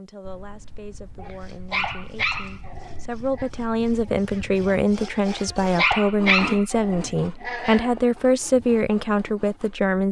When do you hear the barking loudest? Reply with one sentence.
The loudest moment of the barking is at 6 seconds.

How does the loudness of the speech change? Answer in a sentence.
The volume of the speech goes up.